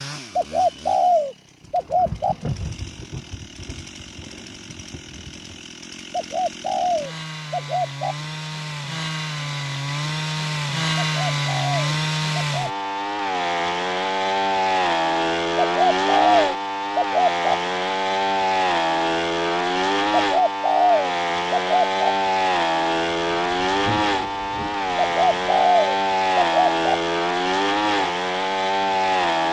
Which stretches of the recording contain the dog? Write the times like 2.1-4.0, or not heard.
not heard.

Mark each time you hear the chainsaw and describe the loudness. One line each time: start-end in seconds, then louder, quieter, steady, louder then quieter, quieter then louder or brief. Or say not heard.
0.0-29.4 louder.